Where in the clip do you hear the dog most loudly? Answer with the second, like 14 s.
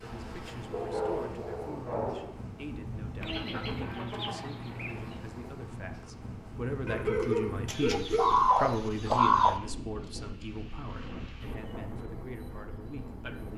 7 s.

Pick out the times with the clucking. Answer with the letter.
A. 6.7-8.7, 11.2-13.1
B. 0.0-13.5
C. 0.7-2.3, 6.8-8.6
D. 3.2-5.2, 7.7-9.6
D.